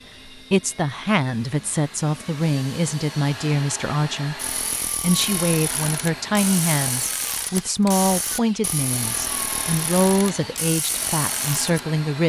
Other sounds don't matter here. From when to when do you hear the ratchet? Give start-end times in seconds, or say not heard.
4.3-11.8.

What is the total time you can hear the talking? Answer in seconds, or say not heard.
11 s.